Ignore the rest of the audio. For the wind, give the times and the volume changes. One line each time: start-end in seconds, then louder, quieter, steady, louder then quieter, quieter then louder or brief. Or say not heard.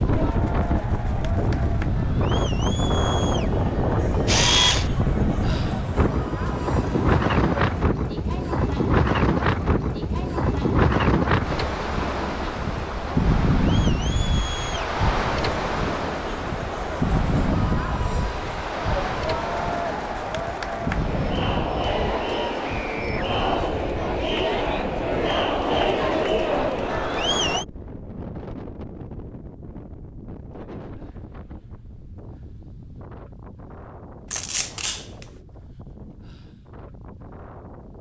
0.0-37.9 quieter.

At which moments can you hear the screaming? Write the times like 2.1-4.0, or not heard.
22.6-23.2.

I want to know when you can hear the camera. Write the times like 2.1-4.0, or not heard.
4.2-4.9, 34.3-35.0.